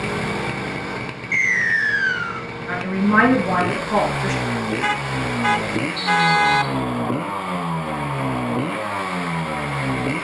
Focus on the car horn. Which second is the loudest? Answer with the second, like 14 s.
6 s.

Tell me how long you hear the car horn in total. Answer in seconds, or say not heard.
2 s.